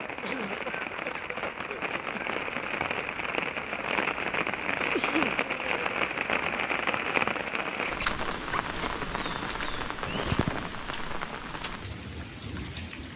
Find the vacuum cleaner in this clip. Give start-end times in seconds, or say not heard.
not heard.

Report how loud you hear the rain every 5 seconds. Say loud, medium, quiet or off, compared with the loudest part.
loud, loud, medium.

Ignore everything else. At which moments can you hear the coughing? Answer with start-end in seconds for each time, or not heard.
0.2-2.4, 4.9-5.5, 10.1-10.7.